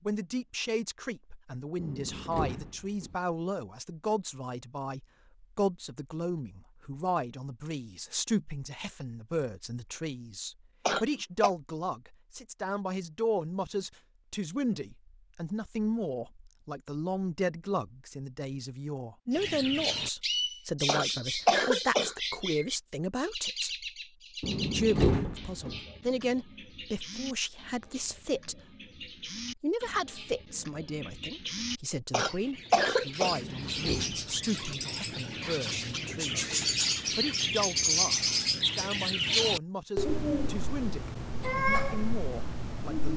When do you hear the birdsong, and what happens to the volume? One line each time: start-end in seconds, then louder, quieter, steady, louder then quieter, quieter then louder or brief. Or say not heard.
19.3-43.1 quieter then louder.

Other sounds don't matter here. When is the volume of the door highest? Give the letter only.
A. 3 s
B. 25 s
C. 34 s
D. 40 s
B.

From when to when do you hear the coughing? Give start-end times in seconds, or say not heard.
10.8-11.5, 20.9-22.1, 32.1-33.4.